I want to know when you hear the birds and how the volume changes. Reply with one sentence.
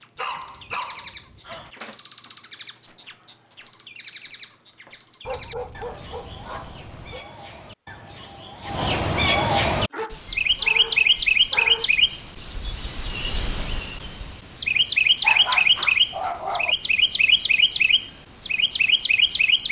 You can hear the birds from 0.0 to 19.6 s, getting louder.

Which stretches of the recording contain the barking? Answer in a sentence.
The barking can be heard from 0.1 to 1.7 s, from 5.2 to 7.2 s, from 9.9 to 11.9 s and from 14.8 to 16.8 s.